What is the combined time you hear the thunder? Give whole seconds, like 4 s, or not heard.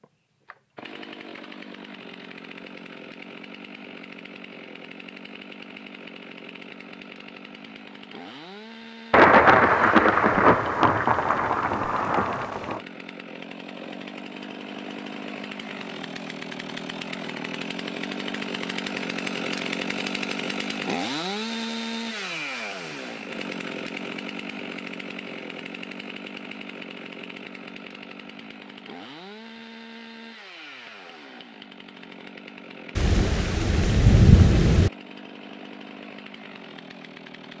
6 s.